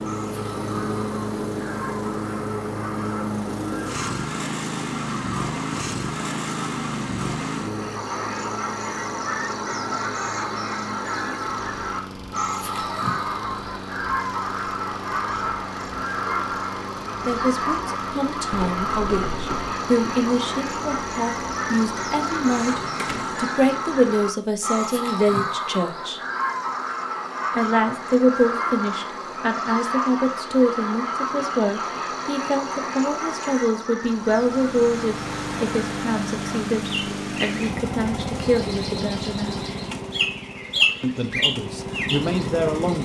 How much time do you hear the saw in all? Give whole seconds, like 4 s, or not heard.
not heard.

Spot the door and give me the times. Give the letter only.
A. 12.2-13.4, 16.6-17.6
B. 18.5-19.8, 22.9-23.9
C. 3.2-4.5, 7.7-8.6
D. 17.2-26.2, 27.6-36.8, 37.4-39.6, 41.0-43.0
B.